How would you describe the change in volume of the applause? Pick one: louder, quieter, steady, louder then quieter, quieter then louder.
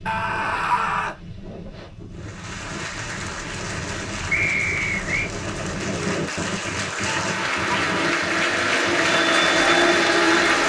louder.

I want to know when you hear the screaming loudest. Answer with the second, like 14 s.
1 s.